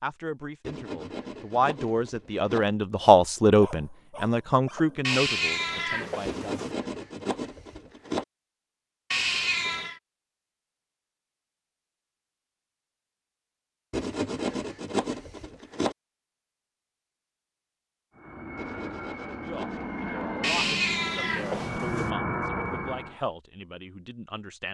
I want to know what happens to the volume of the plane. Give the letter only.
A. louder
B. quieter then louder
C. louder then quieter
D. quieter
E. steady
A.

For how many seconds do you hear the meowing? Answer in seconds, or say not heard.
4 s.